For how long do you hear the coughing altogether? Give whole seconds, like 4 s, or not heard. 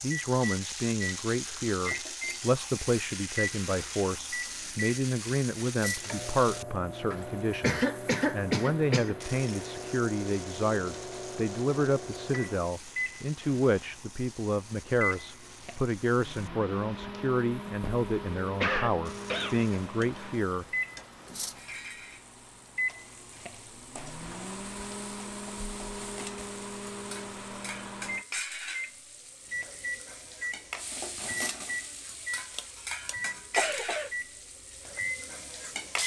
5 s.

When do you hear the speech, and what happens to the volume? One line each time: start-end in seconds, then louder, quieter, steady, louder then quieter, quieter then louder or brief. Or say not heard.
0.0-20.6 steady.